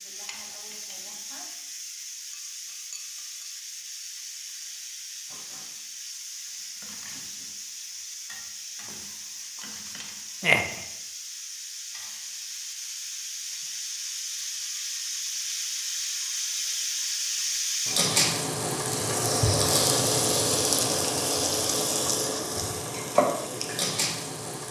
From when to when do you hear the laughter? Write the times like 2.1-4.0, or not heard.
10.4-10.8.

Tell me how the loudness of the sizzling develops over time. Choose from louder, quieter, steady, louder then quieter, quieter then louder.
louder.